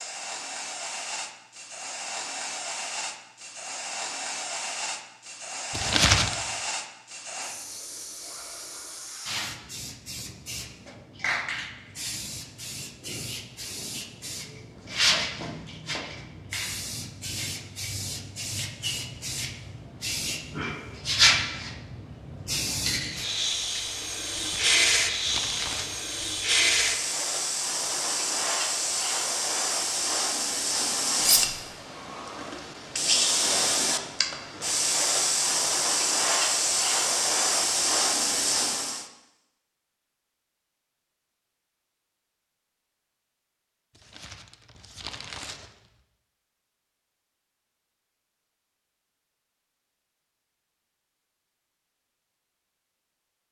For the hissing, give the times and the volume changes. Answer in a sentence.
You can hear the hissing from 0.0 to 39.0 s, getting louder.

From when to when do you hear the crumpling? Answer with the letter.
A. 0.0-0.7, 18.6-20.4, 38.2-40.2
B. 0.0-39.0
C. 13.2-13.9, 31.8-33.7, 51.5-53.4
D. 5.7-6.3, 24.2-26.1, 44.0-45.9
D.